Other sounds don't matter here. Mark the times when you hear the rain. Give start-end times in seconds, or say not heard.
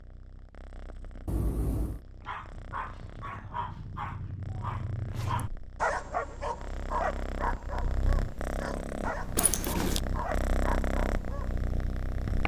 not heard.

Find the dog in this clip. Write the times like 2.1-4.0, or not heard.
2.1-11.7.